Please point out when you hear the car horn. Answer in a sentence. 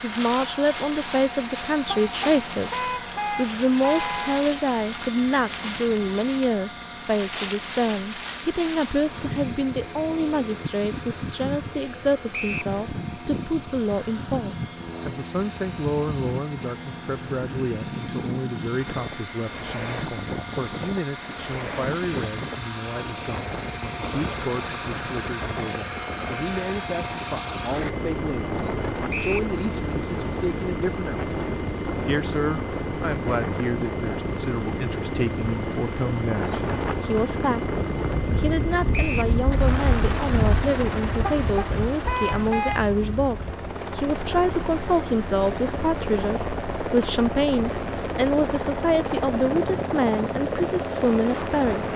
You can hear the car horn from 1.9 to 4.5 s and from 41.2 to 42.9 s.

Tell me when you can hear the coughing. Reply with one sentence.
The coughing can't be heard in this clip.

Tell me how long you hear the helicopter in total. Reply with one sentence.
You can hear the helicopter for 52 seconds altogether.